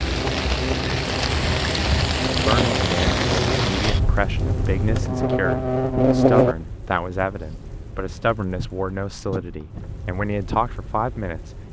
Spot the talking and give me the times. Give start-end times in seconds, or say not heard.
2.4-11.6.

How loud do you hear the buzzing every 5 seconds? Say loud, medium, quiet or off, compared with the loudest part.
medium, loud, off.